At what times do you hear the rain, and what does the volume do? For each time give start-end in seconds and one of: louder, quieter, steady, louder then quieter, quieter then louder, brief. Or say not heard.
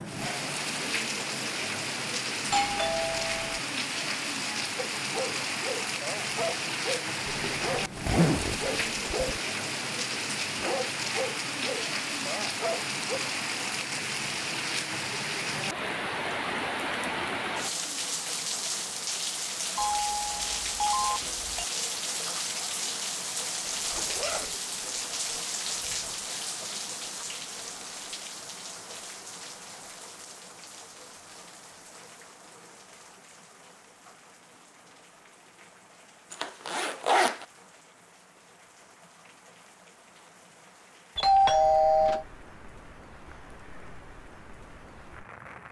0.0-45.6 quieter.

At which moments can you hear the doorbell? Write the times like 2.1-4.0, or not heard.
2.5-3.6, 19.8-21.6, 41.1-42.2.